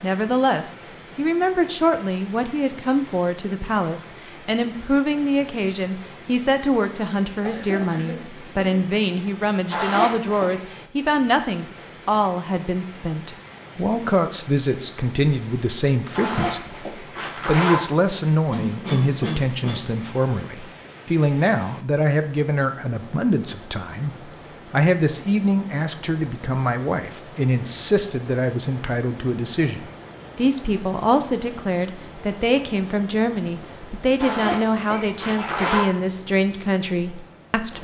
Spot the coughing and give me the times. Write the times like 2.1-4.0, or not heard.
7.4-8.8, 18.5-19.8, 34.8-35.6.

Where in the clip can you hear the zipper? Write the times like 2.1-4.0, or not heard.
9.7-10.6, 16.1-17.9, 34.1-36.0.